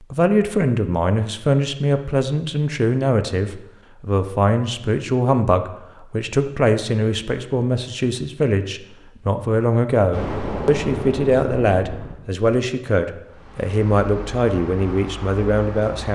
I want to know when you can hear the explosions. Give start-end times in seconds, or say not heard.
10.1-12.2.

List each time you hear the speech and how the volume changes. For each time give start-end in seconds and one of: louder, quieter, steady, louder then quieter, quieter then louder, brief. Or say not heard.
0.0-16.0 steady.